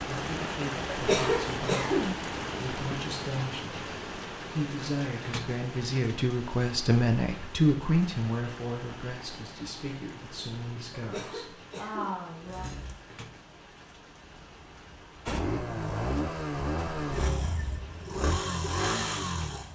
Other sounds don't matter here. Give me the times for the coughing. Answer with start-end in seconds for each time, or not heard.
0.9-2.2, 10.9-12.9.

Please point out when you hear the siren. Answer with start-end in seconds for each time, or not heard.
not heard.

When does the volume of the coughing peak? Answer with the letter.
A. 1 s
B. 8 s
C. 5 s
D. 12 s
A.